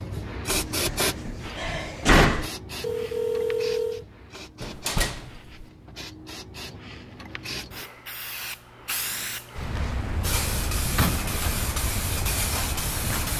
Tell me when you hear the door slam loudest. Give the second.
2 s.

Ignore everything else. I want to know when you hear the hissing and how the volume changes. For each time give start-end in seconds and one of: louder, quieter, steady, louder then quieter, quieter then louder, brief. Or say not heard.
0.0-13.3 quieter then louder.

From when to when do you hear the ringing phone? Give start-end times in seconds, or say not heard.
2.8-4.0.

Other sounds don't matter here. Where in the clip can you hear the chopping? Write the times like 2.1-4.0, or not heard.
not heard.